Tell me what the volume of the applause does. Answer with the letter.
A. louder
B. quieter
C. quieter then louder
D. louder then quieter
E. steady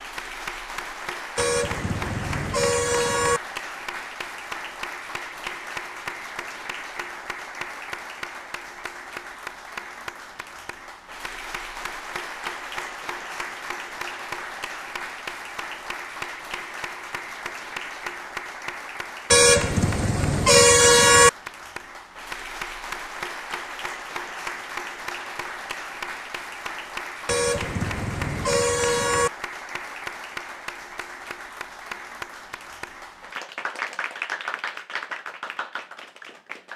E.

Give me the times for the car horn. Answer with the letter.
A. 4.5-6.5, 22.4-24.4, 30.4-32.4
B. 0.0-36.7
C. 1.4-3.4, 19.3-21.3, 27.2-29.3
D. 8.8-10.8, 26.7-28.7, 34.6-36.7
C.